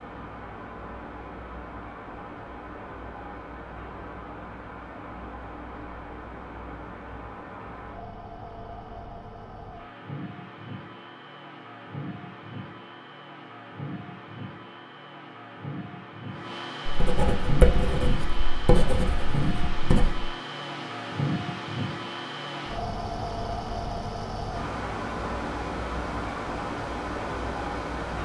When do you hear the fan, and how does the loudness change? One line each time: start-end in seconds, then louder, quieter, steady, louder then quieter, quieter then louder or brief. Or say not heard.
0.0-28.2 louder.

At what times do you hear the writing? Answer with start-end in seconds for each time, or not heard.
16.9-20.2.